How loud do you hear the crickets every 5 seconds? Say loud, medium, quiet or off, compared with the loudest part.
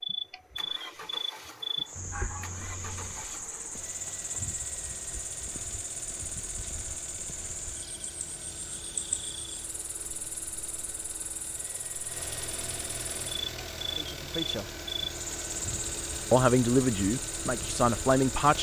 loud, loud, medium, loud.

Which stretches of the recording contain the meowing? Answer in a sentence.
You can hear the meowing from 1.9 to 3.1 s.